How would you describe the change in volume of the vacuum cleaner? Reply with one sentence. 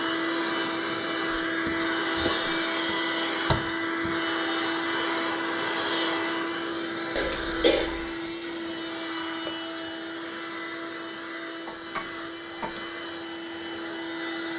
The volume of the vacuum cleaner goes down.